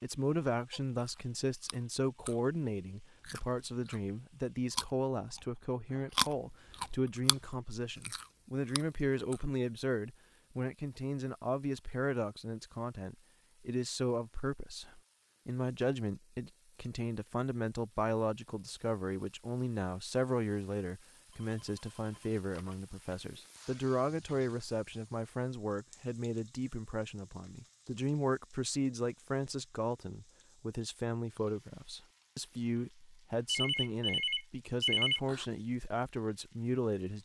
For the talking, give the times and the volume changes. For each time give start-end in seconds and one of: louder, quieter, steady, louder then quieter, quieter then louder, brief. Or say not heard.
0.0-37.1 steady.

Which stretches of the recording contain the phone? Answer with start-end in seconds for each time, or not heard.
0.7-1.2, 21.3-23.1, 33.5-35.5.